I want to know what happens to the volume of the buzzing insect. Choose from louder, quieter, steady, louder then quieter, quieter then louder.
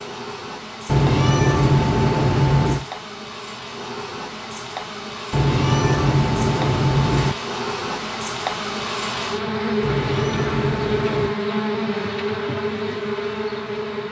louder.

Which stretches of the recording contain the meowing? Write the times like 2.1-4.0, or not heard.
0.8-2.9, 5.3-7.3, 9.8-11.3.